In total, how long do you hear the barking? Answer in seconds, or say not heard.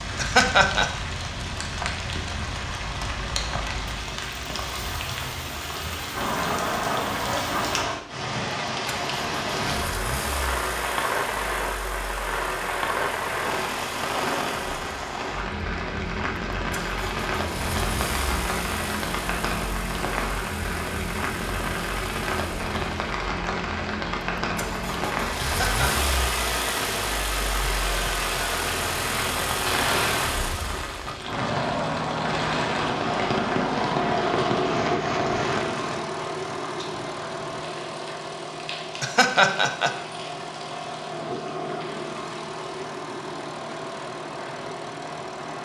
not heard.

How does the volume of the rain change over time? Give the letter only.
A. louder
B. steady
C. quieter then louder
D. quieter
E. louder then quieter
D.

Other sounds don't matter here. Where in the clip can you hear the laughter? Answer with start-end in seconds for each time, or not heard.
0.1-0.9, 25.4-26.1, 39.0-40.0.